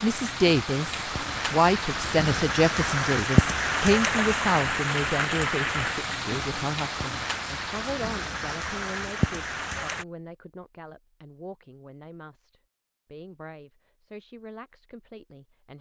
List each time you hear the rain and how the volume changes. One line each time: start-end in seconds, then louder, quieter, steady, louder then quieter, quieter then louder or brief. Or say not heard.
0.0-10.1 louder then quieter.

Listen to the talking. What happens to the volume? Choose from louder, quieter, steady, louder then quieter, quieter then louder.
quieter.